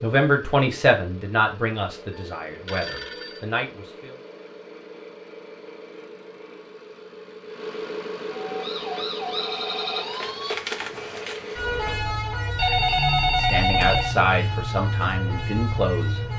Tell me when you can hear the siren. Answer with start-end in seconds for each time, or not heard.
8.4-16.3.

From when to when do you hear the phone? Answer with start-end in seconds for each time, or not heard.
2.1-3.5, 12.6-14.2.